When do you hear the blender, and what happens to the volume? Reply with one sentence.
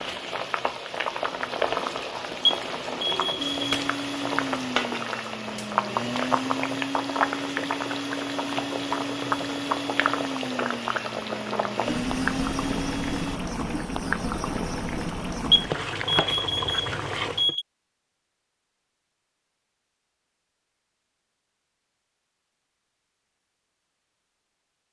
The blender can be heard from 3.4 to 13.4 s, at a steady volume.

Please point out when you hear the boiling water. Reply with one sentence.
The boiling water can be heard from 0.0 to 17.6 s.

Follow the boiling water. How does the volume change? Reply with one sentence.
The loudness of the boiling water stays about the same.